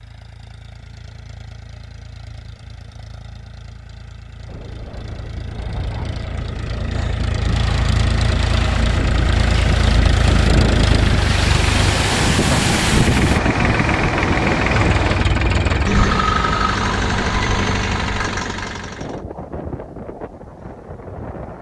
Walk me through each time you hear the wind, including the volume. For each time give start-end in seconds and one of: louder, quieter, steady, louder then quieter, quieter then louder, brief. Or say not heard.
4.5-21.5 louder then quieter.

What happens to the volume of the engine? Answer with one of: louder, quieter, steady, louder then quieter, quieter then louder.
louder.